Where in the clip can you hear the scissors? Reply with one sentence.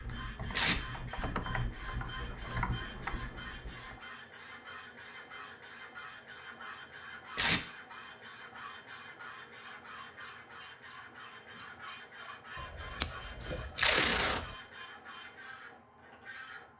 The scissors can be heard from 12.6 to 14.6 s.